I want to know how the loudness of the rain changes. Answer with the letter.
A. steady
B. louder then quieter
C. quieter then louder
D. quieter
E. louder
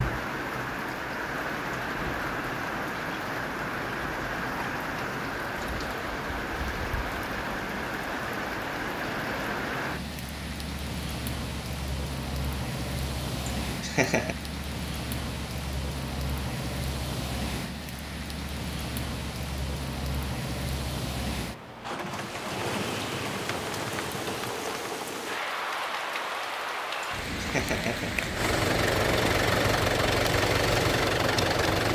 A.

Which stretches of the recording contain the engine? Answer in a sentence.
You can hear the engine from 28.4 to 31.8 s.